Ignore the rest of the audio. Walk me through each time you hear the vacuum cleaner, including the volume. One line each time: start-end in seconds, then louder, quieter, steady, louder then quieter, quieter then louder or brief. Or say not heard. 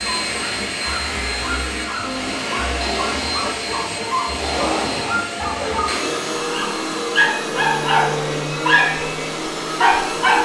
0.0-10.4 steady.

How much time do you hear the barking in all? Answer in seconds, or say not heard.
9 s.